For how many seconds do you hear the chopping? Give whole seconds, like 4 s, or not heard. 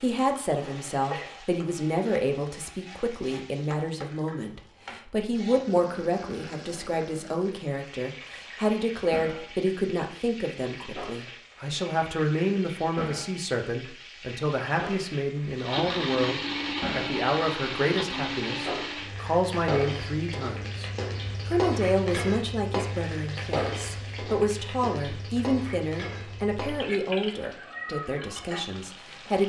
not heard.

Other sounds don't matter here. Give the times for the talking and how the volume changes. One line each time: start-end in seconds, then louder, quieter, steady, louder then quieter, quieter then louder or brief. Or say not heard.
0.0-29.4 steady.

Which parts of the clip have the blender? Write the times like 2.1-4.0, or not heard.
15.6-19.1.